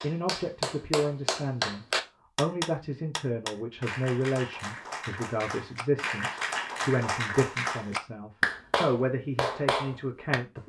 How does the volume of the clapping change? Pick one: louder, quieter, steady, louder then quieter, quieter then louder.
quieter then louder.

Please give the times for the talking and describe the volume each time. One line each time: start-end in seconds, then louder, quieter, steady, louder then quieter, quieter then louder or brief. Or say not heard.
0.0-10.6 steady.